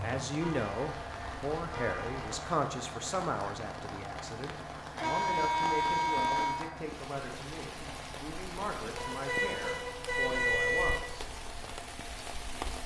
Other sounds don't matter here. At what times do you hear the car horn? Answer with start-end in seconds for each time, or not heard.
0.4-2.4, 5.0-6.7, 8.9-11.0.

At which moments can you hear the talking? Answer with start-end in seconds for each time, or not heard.
0.0-11.2.